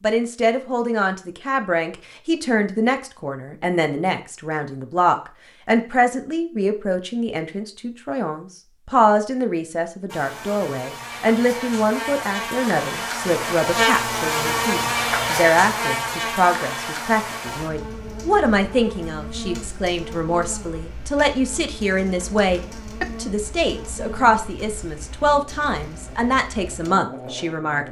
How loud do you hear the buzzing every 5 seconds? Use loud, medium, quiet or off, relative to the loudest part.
off, off, loud, loud, quiet, quiet.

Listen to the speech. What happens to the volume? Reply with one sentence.
The volume of the speech stays about the same.